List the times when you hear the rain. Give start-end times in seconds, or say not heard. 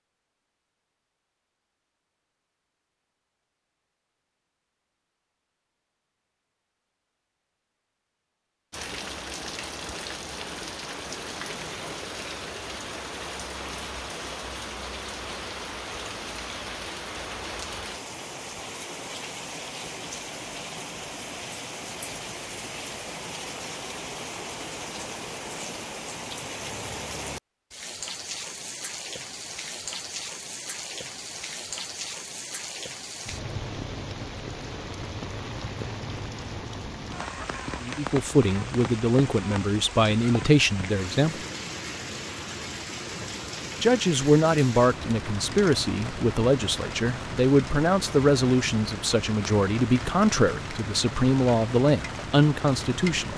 8.7-53.3.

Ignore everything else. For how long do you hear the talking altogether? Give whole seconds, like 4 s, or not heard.
13 s.